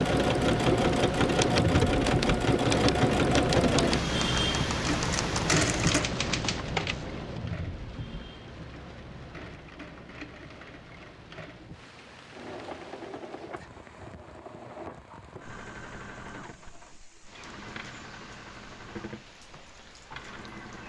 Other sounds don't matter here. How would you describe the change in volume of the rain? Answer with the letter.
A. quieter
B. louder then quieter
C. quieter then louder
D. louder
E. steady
A.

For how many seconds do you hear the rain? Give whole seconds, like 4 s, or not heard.
21 s.